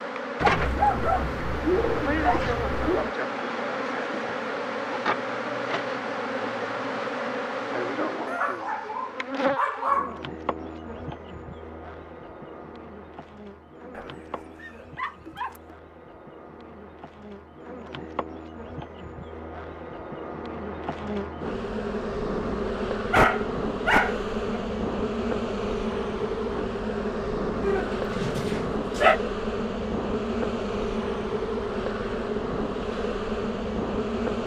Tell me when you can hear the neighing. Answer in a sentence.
The neighing can't be heard in this clip.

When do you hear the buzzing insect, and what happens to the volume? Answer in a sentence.
The buzzing insect can be heard from 0.0 to 34.4 s, getting quieter then louder.